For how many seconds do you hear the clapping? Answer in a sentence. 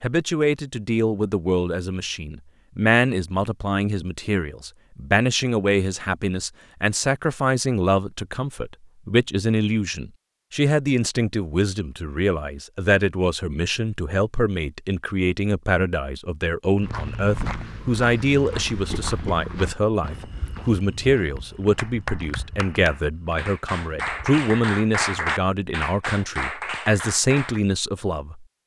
You can hear the clapping for 6 seconds altogether.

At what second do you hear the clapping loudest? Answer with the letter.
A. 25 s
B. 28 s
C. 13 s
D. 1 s
A.